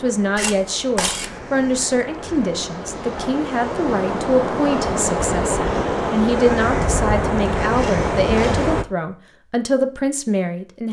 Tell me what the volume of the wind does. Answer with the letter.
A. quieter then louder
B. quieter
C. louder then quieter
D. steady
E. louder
E.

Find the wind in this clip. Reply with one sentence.
You can hear the wind from 0.0 to 8.8 s.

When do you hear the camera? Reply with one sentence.
You can hear the camera from 0.3 to 1.4 s and from 7.8 to 8.7 s.